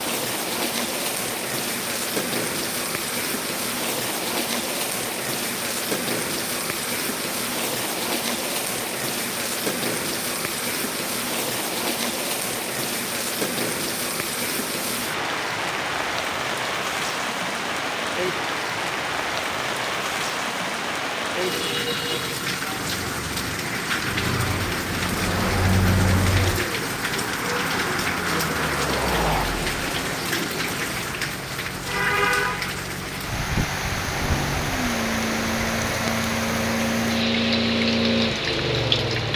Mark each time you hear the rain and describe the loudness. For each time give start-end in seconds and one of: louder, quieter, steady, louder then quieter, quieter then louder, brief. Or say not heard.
0.0-39.3 steady.